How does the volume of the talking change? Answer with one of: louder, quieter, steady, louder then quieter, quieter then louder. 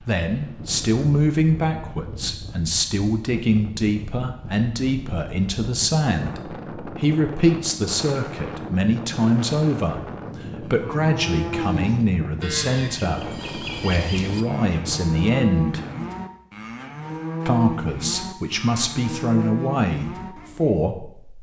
steady.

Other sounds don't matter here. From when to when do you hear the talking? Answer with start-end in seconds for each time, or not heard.
0.0-15.8, 17.4-21.3.